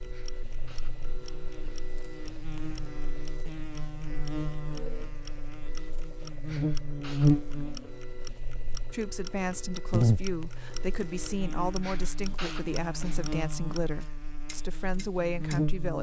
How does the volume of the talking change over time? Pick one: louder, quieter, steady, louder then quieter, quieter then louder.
steady.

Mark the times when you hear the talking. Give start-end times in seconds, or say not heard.
8.9-15.9.